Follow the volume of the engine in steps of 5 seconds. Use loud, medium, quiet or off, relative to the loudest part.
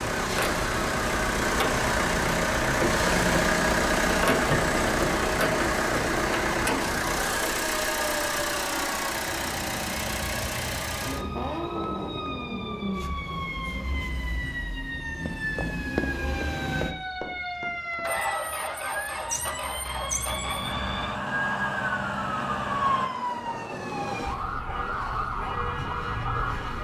loud, loud, medium, medium, medium, off.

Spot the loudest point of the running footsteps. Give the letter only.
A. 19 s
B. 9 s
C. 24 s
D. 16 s
D.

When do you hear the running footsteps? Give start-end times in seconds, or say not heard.
15.2-18.1.